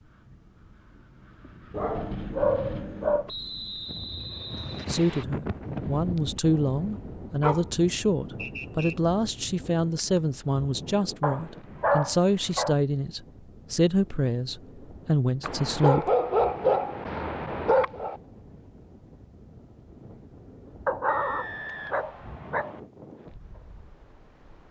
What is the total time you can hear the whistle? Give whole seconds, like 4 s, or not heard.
4 s.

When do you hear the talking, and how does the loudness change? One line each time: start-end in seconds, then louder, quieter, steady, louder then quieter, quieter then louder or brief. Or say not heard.
4.8-16.1 steady.